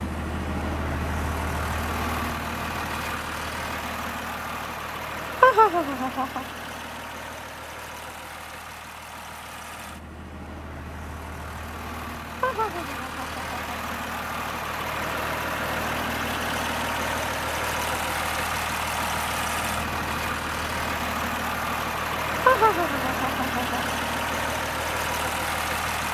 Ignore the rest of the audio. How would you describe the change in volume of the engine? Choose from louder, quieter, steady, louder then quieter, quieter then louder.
quieter then louder.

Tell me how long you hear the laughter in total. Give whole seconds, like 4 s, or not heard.
4 s.